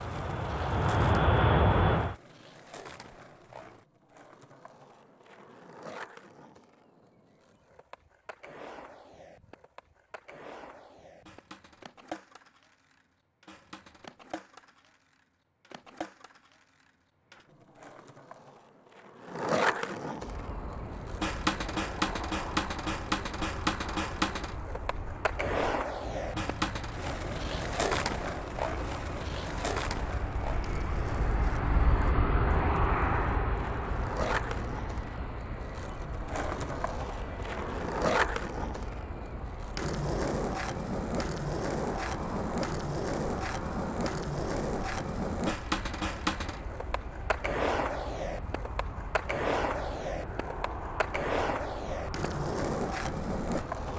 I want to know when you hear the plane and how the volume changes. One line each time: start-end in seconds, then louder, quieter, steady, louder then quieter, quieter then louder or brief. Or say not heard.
0.0-2.1 brief
20.1-53.9 louder then quieter.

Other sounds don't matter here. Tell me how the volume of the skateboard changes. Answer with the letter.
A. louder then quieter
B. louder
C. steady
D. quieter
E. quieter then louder
B.